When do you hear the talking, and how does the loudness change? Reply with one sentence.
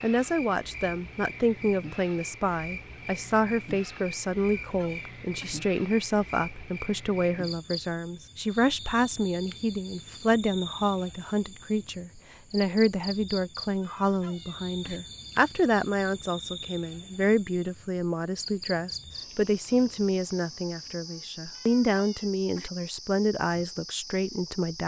You can hear the talking from 0.0 to 24.8 s, at a steady volume.